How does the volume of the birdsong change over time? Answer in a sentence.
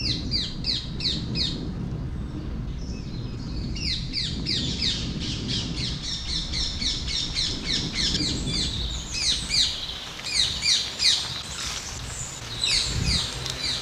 The loudness of the birdsong goes up.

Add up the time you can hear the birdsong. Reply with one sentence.
The birdsong can be heard for 14 seconds in total.